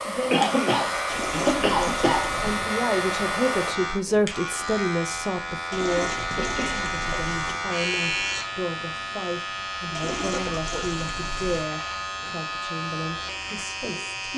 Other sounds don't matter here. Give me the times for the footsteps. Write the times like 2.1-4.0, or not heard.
not heard.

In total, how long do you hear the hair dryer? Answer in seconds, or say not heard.
4 s.